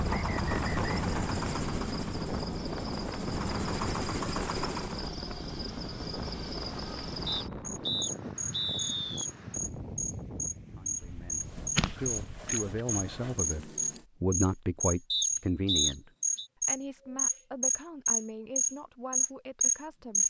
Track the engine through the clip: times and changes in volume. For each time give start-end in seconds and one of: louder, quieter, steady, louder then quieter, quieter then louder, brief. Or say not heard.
0.0-5.1 quieter then louder.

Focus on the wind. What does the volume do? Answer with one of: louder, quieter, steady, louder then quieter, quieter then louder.
quieter.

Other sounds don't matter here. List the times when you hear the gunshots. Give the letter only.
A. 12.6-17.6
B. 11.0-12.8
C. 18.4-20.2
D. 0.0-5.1
B.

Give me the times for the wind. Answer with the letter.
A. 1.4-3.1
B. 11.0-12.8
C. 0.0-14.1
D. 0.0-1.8
C.